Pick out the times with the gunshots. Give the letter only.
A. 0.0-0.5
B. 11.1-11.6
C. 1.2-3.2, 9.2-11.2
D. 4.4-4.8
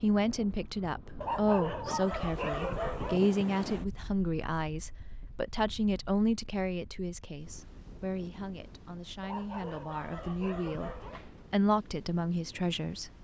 B.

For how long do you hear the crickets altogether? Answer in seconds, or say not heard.
not heard.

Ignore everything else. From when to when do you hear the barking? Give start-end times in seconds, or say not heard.
1.2-3.2, 9.2-11.2.